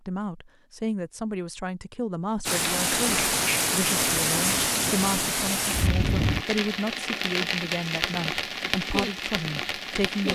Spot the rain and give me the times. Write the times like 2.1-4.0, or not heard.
2.5-10.3.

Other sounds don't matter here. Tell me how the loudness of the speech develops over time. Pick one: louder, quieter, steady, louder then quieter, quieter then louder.
steady.